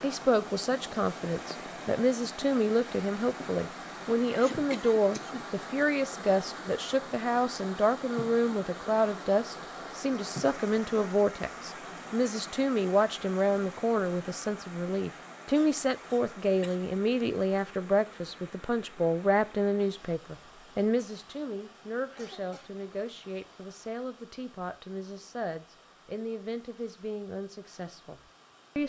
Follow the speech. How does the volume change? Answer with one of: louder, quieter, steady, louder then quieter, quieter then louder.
quieter.